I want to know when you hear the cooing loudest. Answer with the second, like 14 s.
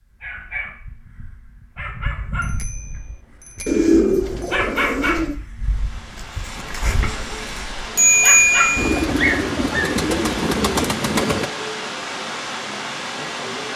4 s.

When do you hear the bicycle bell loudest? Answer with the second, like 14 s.
8 s.